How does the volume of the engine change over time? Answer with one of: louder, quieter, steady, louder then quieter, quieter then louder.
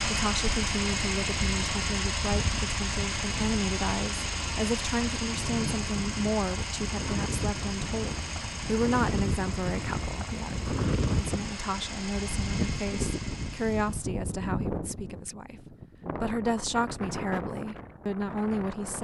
quieter.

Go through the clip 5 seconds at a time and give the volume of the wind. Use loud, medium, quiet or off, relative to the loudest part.
medium, loud, loud, medium.